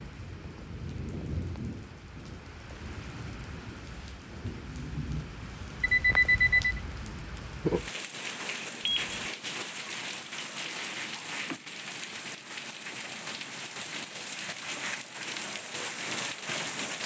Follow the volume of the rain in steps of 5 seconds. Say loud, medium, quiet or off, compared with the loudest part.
medium, loud, loud, loud.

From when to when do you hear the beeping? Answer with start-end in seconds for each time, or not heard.
5.8-6.8, 8.8-9.3.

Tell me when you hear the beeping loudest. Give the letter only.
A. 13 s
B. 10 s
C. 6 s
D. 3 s
C.